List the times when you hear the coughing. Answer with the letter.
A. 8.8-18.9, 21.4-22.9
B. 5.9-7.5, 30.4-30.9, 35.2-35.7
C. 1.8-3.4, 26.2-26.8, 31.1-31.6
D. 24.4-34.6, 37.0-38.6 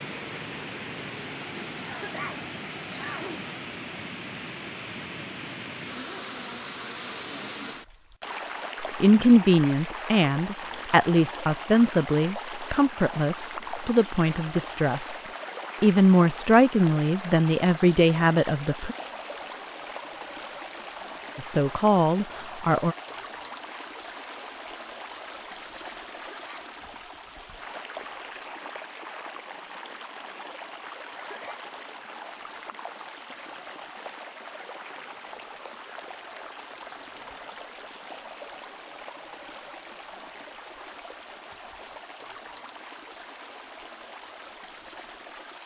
C.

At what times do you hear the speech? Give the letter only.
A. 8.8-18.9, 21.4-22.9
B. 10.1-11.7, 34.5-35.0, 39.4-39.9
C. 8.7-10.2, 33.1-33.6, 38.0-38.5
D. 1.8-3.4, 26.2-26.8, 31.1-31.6
A.